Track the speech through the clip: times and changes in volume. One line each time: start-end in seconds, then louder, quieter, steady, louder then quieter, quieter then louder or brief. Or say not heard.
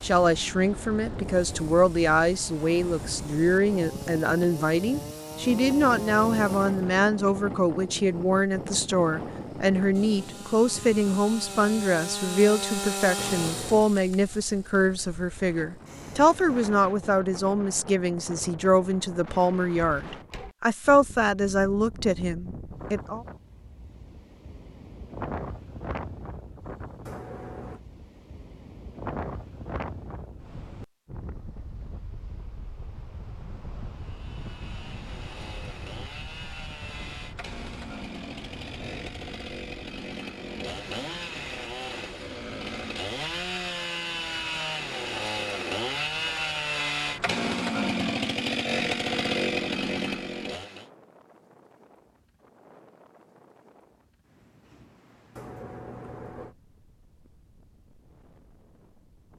0.0-23.2 steady.